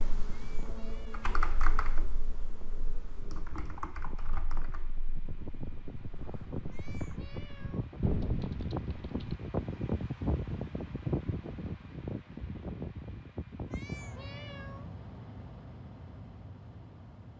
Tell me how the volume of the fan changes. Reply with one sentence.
The volume of the fan goes up, then down.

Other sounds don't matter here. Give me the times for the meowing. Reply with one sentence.
The meowing can be heard from 0.4 to 1.3 s, from 6.7 to 8.0 s and from 13.7 to 14.9 s.